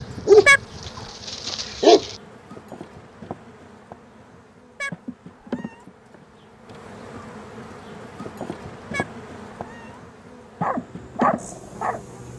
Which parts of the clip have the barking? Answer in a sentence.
The barking can be heard from 0.0 to 2.1 s and from 10.6 to 12.3 s.